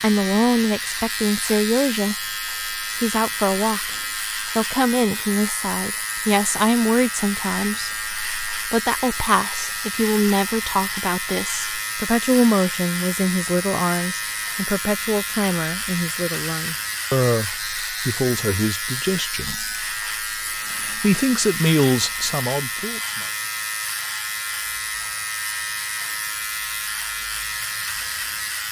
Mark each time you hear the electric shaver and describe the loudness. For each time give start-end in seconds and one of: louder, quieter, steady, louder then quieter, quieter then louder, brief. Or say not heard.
0.0-28.6 steady.